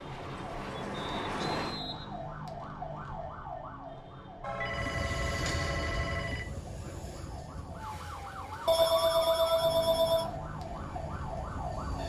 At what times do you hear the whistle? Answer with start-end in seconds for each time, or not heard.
0.9-2.2.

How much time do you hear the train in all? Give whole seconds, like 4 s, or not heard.
9 s.